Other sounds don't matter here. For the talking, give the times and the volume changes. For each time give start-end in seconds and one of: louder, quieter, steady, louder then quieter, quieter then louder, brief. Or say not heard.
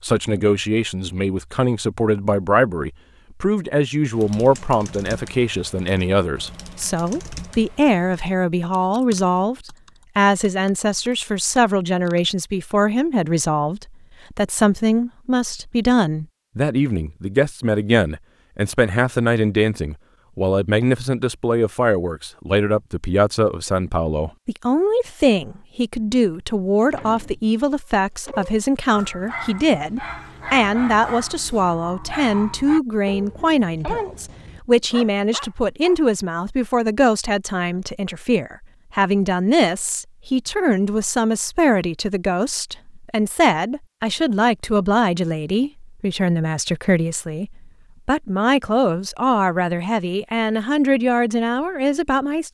0.0-52.4 steady.